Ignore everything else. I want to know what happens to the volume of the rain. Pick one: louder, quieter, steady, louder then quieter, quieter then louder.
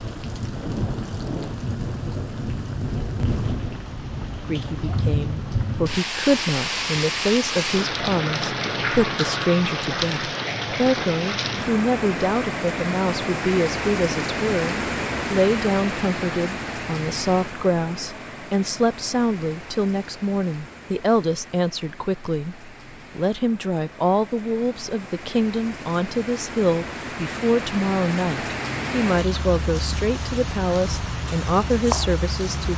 quieter then louder.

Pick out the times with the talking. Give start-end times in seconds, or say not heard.
4.5-32.7.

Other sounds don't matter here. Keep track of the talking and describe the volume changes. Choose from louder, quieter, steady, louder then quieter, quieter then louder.
steady.